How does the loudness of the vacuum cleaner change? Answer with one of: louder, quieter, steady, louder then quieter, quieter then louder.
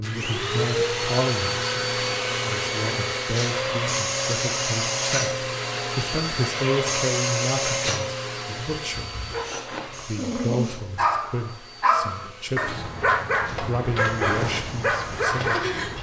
quieter.